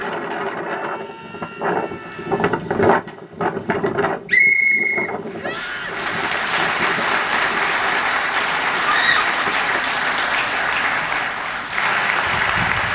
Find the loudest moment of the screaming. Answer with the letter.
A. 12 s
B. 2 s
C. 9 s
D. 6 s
C.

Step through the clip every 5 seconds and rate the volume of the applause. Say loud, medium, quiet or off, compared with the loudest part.
off, loud, loud.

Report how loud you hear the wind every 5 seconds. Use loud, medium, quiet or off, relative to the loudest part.
loud, medium, off.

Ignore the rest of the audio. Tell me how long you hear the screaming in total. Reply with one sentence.
You can hear the screaming for 3 seconds altogether.